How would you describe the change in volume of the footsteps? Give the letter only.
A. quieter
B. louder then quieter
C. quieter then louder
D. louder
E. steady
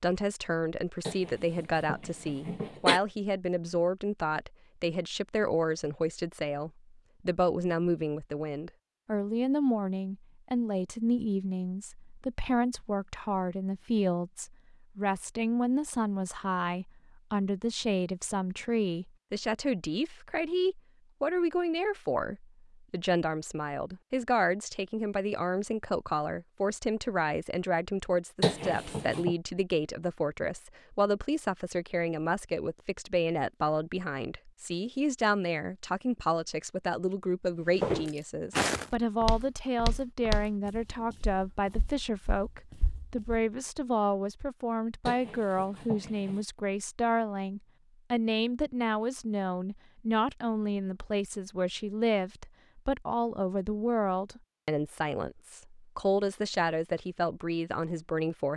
A.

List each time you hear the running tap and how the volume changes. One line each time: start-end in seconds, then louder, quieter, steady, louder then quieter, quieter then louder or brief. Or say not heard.
not heard.